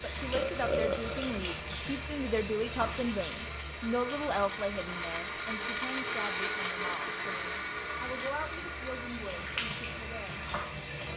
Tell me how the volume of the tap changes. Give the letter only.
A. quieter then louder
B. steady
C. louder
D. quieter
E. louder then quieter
A.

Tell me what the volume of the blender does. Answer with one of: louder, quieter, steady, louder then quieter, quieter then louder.
louder then quieter.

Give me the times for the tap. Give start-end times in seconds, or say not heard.
0.0-11.1.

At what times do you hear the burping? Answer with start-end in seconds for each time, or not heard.
0.3-1.4.